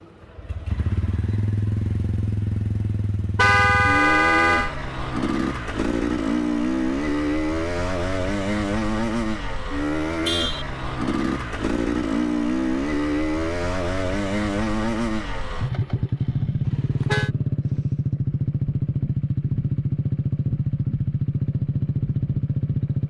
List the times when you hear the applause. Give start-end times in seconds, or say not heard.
not heard.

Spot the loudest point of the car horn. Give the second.
4 s.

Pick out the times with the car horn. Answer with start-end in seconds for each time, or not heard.
3.4-4.7, 10.2-10.7, 16.6-17.3.